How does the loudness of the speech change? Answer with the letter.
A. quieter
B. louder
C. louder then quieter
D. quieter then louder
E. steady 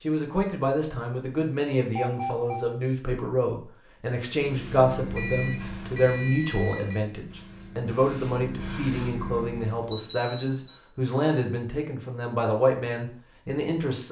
E.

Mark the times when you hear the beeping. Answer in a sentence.
You can hear the beeping from 1.9 to 2.6 s, from 5.2 to 7.0 s and from 9.9 to 10.8 s.